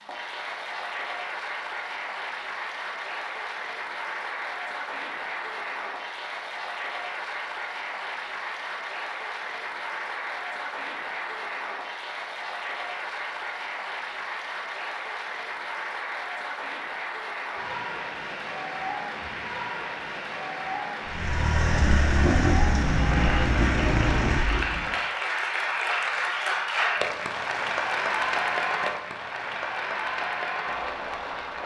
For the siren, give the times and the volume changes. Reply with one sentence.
The siren can't be heard in this clip.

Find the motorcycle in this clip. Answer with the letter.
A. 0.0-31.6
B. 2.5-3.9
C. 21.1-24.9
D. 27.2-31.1
C.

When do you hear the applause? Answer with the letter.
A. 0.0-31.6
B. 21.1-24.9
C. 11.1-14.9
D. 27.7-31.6
A.